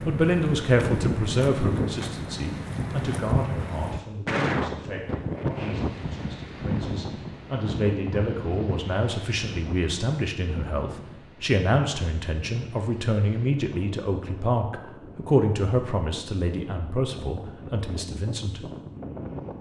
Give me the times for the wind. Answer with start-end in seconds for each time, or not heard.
0.0-19.5.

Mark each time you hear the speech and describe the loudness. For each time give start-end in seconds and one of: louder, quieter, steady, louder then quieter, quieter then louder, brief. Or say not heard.
0.0-18.6 quieter then louder.